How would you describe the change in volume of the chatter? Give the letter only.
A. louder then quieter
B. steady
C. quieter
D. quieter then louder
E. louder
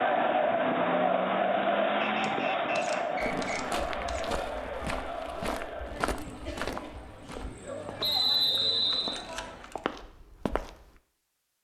C.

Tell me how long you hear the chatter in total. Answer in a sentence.
You can hear the chatter for 10 seconds altogether.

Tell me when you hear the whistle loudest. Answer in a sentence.
The loudest moment of the whistle is at 8 seconds.